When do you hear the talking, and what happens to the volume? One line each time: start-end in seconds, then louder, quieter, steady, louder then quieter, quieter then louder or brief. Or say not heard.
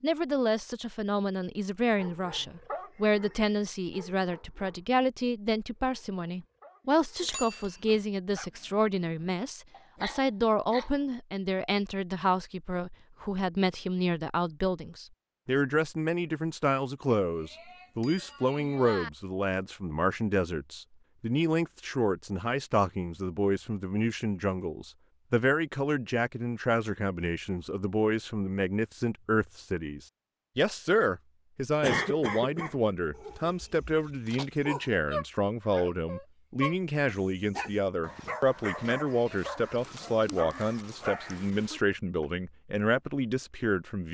0.0-44.0 steady.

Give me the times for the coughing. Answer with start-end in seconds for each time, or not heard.
31.8-32.8.